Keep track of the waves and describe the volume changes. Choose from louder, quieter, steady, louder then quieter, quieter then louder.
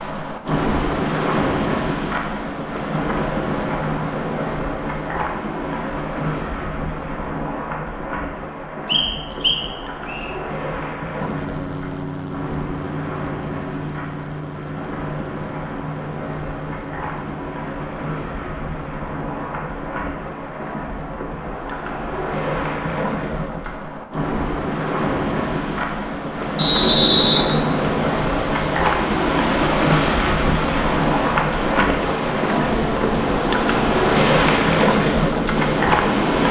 quieter then louder.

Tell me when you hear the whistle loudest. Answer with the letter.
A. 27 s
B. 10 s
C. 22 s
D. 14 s
A.